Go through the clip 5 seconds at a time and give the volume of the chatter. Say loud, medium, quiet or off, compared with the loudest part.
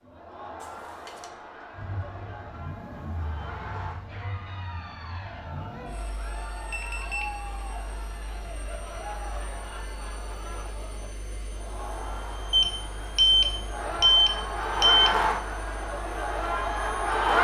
quiet, quiet, medium, loud.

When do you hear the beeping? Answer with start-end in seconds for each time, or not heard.
0.6-1.3, 6.7-7.4, 12.5-15.2.